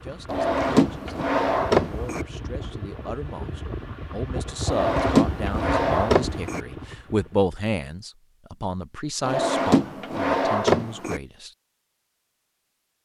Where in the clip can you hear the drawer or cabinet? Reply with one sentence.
The drawer or cabinet can be heard from 0.2 to 2.2 s, from 4.7 to 6.6 s and from 9.2 to 11.2 s.